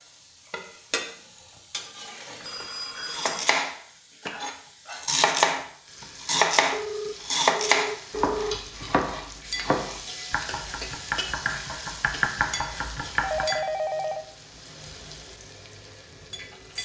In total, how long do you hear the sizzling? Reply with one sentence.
The sizzling can be heard for 17 seconds in total.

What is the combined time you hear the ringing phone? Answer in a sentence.
You can hear the ringing phone for 4 seconds altogether.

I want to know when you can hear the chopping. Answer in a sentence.
You can hear the chopping from 3.0 to 13.6 s.